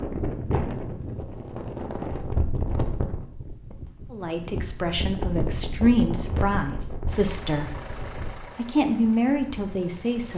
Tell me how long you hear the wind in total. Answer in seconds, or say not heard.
10 s.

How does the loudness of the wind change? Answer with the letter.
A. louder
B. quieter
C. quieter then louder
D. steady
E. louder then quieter
B.